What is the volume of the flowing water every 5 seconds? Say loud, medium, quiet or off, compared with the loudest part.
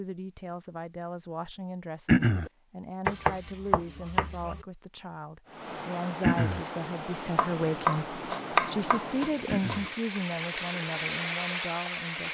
off, medium, loud.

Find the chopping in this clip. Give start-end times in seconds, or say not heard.
3.0-4.7, 7.3-9.9.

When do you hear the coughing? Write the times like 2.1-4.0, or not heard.
2.0-2.5, 6.2-6.7, 9.4-9.9.